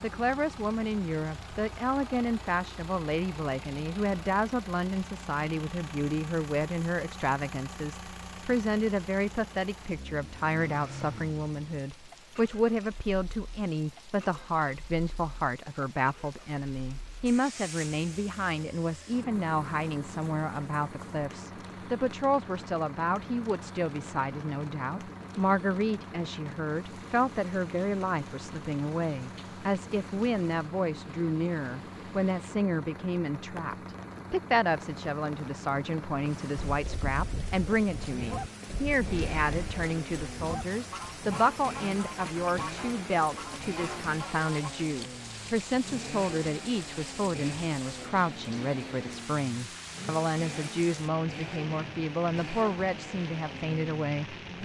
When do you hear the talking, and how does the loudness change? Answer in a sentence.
The talking can be heard from 0.0 to 54.6 s, at a steady volume.